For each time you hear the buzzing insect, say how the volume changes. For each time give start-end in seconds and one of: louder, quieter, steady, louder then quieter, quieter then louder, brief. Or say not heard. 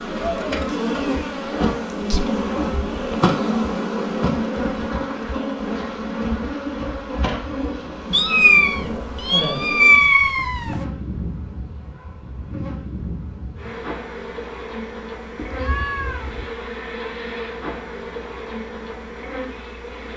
0.0-20.1 quieter.